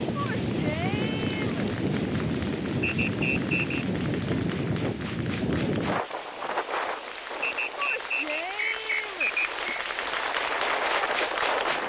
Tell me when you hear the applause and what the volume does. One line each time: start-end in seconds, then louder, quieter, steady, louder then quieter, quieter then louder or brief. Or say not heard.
0.0-11.8 louder.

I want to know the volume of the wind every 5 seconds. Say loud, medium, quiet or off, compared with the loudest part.
loud, medium, loud.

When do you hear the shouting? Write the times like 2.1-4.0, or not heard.
0.1-1.7, 7.8-9.3.